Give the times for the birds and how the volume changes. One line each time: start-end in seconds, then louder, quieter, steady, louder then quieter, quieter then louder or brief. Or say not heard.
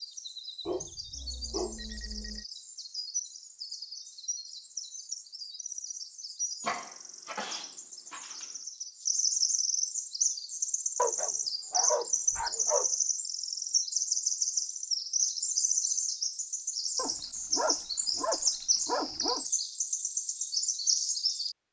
0.0-21.6 louder.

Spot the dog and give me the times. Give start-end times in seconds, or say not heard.
0.7-2.5, 6.6-8.4, 10.9-12.9, 16.9-19.4.